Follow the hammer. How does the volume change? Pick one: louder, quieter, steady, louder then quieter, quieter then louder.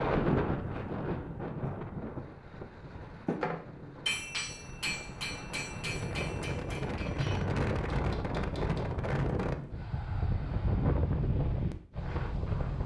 quieter.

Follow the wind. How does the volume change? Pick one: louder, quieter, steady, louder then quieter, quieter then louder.
quieter then louder.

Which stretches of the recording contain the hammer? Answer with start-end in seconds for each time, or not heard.
3.2-8.9.